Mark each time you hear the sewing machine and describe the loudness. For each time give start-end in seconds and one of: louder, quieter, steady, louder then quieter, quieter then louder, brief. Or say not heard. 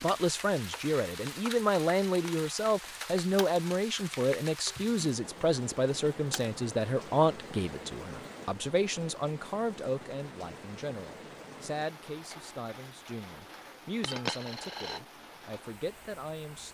not heard.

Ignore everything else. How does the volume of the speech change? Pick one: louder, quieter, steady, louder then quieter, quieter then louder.
quieter.